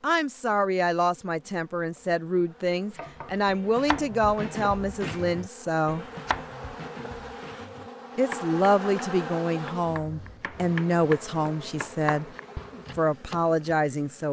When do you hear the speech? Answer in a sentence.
The speech can be heard from 0.0 to 6.0 s, from 8.2 to 12.3 s and from 12.9 to 14.2 s.